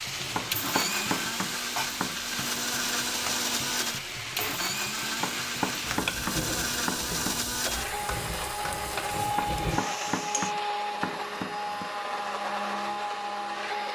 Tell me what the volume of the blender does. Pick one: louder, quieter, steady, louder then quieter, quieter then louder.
steady.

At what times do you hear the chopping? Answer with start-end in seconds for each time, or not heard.
0.3-2.4, 5.2-7.5, 9.3-11.9.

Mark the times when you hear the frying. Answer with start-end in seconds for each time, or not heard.
0.0-10.6.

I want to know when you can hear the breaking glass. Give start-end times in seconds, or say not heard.
not heard.